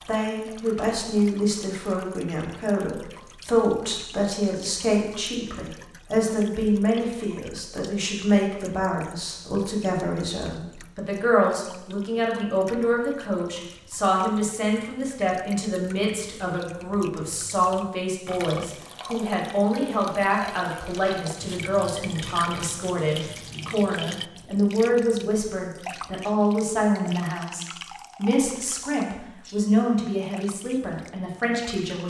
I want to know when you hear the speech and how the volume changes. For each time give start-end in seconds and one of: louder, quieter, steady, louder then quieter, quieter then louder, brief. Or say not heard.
0.1-32.0 steady.